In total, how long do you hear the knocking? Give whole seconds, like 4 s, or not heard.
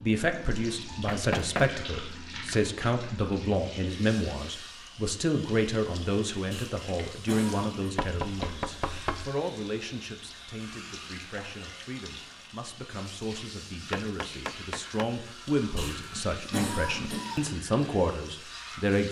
3 s.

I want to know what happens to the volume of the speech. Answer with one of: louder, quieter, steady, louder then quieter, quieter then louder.
quieter then louder.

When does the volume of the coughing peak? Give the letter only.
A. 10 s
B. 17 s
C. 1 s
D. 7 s
B.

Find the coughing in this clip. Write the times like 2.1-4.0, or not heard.
6.5-7.8, 15.8-17.5.